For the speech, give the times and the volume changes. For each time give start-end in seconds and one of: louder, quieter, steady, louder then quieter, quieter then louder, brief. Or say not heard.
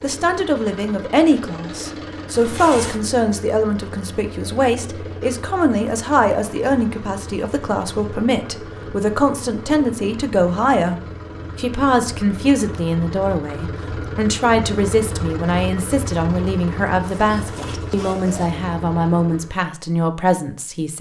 0.0-20.9 steady.